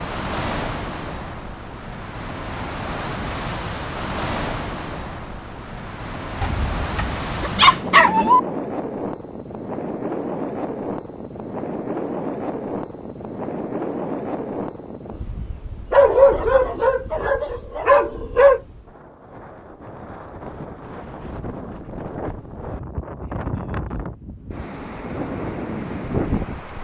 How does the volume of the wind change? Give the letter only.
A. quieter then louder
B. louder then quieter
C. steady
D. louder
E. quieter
A.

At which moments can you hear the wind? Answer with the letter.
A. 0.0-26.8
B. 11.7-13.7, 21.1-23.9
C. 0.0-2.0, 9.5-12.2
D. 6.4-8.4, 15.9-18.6
A.